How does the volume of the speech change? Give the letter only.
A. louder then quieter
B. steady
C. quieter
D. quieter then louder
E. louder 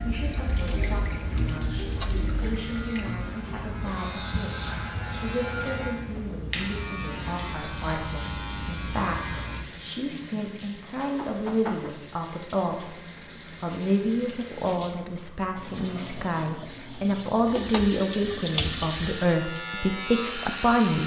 E.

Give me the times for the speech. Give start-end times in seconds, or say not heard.
0.0-21.0.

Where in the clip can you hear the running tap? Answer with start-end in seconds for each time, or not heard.
0.0-21.0.